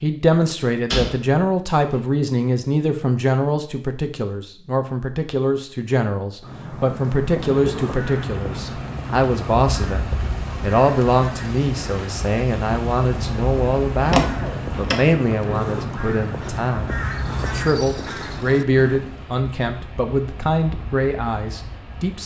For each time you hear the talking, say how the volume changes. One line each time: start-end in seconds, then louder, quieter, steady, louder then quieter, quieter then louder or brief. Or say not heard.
0.0-22.2 steady.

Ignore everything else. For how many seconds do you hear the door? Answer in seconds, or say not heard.
2 s.